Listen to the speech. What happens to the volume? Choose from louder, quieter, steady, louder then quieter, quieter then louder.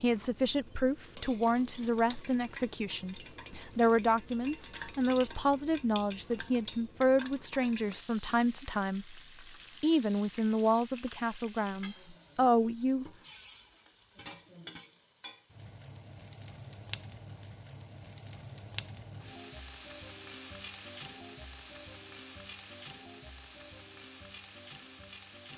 steady.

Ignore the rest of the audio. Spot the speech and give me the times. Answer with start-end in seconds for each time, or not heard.
0.0-9.2, 9.8-13.1.